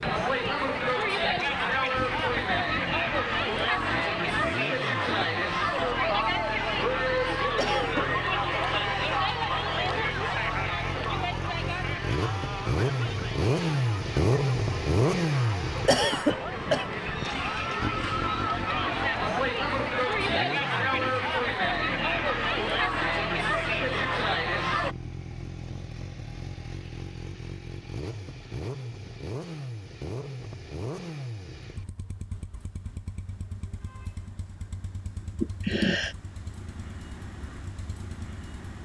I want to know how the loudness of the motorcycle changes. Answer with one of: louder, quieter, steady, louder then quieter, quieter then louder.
louder then quieter.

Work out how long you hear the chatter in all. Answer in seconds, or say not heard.
25 s.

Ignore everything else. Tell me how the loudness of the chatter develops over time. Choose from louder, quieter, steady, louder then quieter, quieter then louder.
quieter then louder.